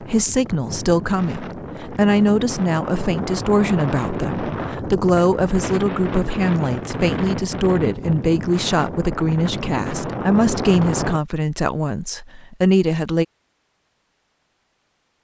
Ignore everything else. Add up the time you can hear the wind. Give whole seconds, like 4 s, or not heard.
11 s.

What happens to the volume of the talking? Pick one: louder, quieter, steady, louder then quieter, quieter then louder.
steady.